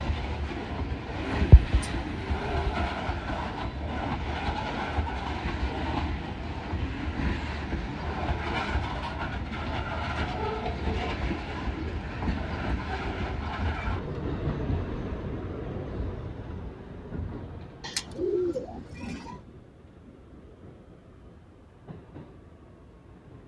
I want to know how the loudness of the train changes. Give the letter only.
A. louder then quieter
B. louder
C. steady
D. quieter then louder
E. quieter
E.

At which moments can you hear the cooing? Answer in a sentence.
You can hear the cooing from 1.2 to 2.9 s and from 17.8 to 19.4 s.